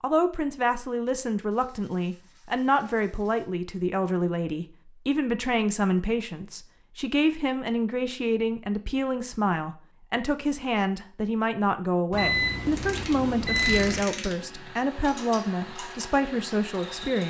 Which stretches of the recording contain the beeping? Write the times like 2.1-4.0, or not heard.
12.1-14.1.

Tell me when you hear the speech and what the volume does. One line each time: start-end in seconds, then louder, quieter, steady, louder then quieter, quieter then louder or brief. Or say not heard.
0.0-17.2 steady.